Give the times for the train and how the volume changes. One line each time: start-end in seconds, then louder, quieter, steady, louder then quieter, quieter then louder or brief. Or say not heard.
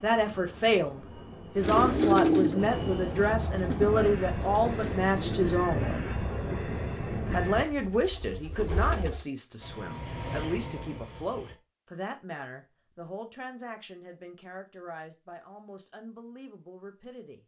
0.0-7.7 louder
9.6-11.6 brief.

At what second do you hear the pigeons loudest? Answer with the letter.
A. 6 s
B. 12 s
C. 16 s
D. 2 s
D.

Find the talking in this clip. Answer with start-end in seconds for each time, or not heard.
0.0-5.9, 7.3-17.4.